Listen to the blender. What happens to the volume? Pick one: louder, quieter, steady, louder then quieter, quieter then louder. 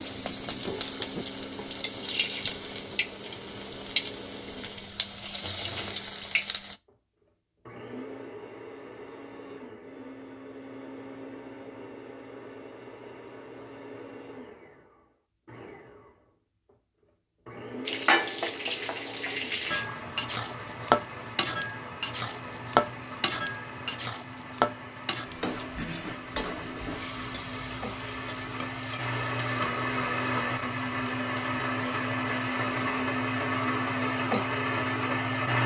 louder.